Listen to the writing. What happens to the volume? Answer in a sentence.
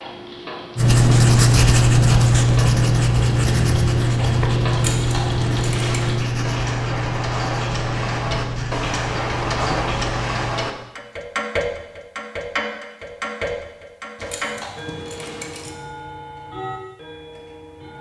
The volume of the writing goes down.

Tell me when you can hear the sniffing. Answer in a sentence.
The sniffing can't be heard in this clip.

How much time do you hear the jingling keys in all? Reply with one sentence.
You can hear the jingling keys for 3 seconds altogether.